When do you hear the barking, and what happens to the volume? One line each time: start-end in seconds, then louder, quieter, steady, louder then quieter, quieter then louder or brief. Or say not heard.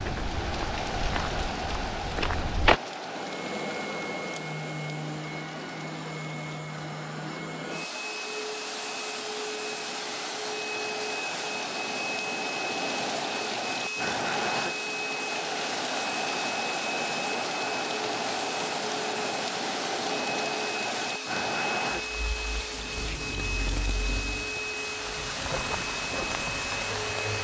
not heard.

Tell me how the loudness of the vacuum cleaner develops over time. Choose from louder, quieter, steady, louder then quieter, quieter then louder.
steady.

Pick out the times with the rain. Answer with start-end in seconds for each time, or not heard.
0.0-27.4.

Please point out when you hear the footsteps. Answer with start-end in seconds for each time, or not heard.
0.0-2.8.